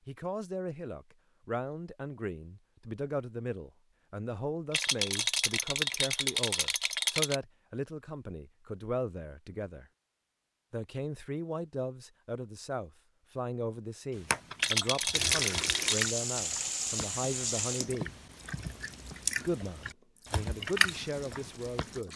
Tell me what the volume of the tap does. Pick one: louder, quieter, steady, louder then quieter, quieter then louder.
quieter.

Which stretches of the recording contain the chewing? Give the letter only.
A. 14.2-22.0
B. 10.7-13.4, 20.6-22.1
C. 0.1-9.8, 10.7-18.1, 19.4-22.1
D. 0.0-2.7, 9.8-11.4
A.